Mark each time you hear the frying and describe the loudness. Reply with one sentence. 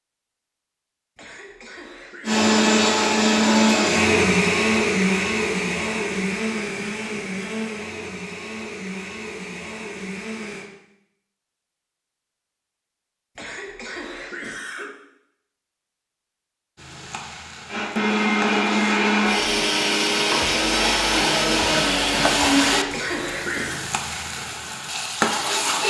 The frying can be heard from 16.8 to 25.8 s, getting louder.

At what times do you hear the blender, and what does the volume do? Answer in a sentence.
You can hear the blender from 2.2 to 10.7 s, getting quieter; and from 17.6 to 22.9 s, at a steady volume.